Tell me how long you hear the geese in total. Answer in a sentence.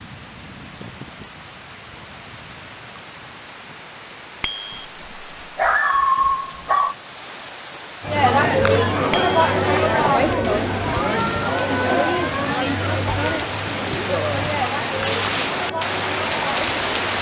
The geese can't be heard in this clip.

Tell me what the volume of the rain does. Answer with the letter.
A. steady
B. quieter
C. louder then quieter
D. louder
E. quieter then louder
D.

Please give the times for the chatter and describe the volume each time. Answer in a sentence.
You can hear the chatter from 8.0 to 17.1 s, getting quieter.